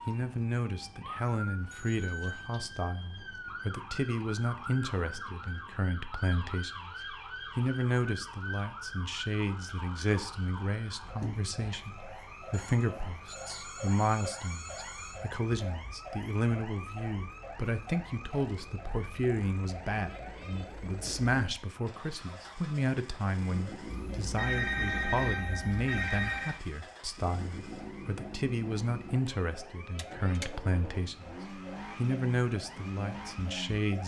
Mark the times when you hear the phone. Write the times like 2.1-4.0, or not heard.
1.7-2.5, 12.5-15.2, 23.9-26.6.